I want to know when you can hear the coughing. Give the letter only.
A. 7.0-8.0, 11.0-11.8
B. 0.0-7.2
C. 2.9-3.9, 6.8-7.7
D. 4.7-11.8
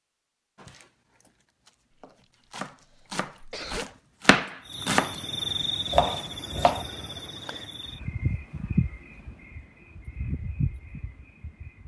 C.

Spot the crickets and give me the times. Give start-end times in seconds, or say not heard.
4.7-11.8.